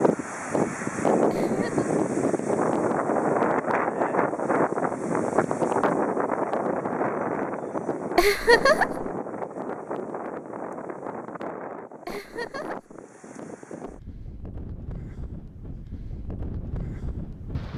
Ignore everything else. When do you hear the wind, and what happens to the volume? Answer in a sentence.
You can hear the wind from 0.0 to 17.7 s, getting quieter.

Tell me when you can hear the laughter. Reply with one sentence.
You can hear the laughter from 1.3 to 1.9 s, from 8.2 to 9.1 s and from 12.1 to 12.9 s.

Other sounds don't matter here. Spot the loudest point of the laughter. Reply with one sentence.
The volume of the laughter peaks at 9 seconds.